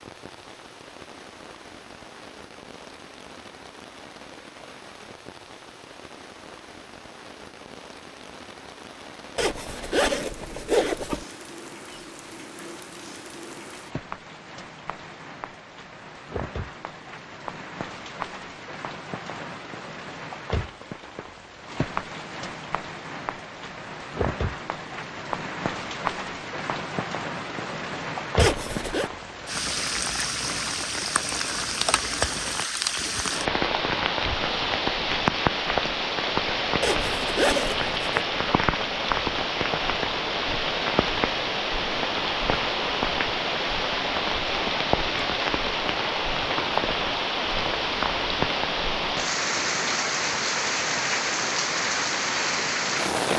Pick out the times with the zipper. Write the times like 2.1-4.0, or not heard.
9.3-11.2, 28.4-29.1, 36.8-38.2.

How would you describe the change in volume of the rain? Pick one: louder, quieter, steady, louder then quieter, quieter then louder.
louder.